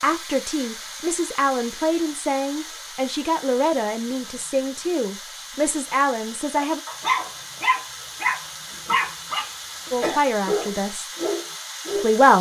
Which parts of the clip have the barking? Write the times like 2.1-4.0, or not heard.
6.5-12.3.